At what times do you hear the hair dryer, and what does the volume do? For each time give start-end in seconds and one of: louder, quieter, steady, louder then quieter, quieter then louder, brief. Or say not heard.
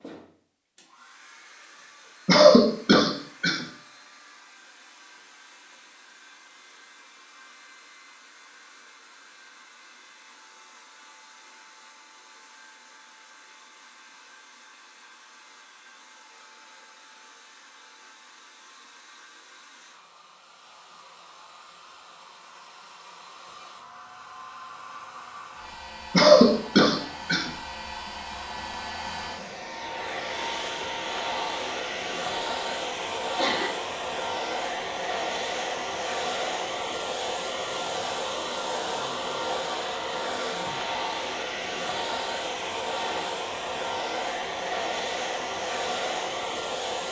0.0-47.0 louder.